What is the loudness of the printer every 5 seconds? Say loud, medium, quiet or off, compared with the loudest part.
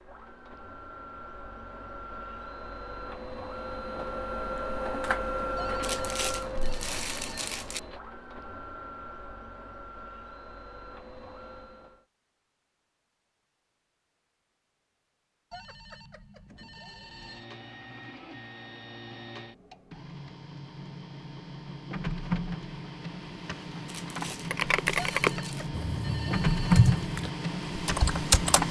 medium, medium, quiet, quiet, medium, loud.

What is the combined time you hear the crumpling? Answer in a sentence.
The crumpling can be heard for 4 seconds in total.